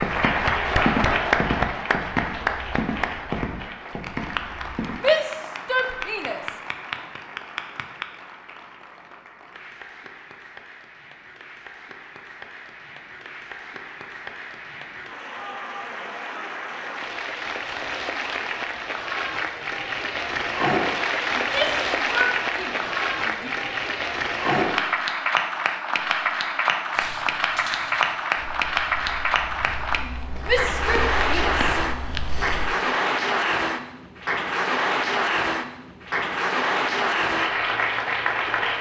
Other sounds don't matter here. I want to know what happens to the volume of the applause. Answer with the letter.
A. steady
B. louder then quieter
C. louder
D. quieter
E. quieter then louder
E.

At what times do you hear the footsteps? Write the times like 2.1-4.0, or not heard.
0.0-5.0, 26.9-32.7.